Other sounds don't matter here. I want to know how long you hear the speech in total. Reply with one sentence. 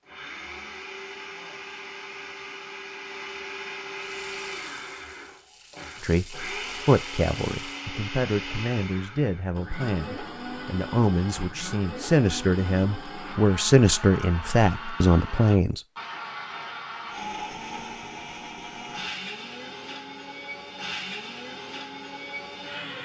You can hear the speech for 10 seconds altogether.